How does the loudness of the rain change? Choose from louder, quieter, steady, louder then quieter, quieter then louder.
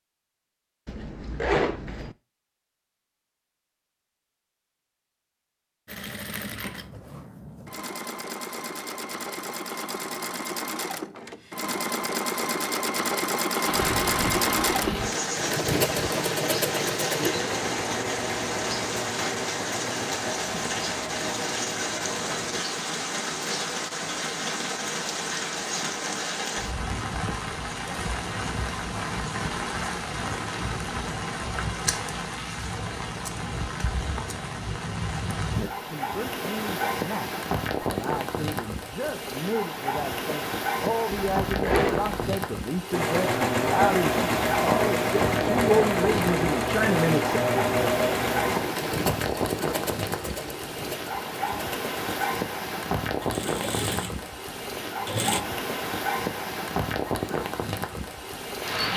steady.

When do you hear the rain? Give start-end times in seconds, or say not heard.
13.6-58.9.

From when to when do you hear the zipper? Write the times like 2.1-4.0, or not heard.
0.8-2.1, 41.1-42.4.